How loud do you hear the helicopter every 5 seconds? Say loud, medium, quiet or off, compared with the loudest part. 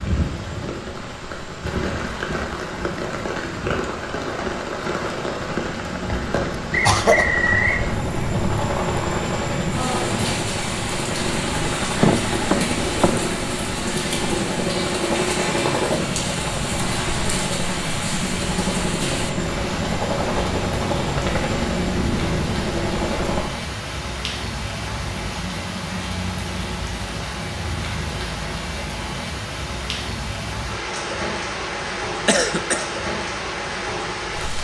quiet, loud, loud, loud, loud, off, off.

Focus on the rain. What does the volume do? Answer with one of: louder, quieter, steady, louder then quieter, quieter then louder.
steady.